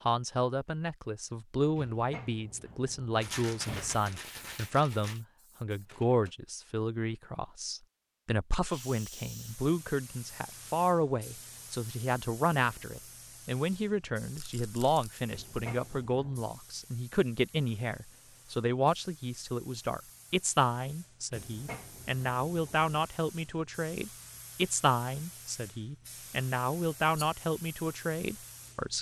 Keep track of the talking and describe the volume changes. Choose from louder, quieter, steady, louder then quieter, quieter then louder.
steady.